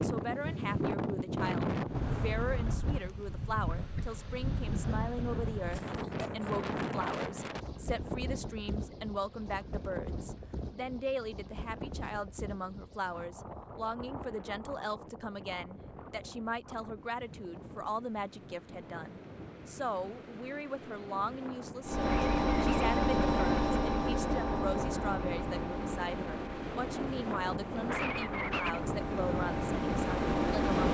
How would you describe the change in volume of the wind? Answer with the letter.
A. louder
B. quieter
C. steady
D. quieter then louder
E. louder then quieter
D.